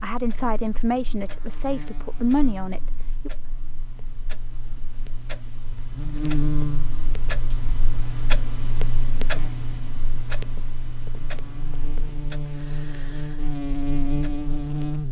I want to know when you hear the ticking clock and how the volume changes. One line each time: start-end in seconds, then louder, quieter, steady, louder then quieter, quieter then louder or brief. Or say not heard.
0.0-15.0 louder then quieter.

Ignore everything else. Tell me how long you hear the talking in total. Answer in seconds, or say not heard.
3 s.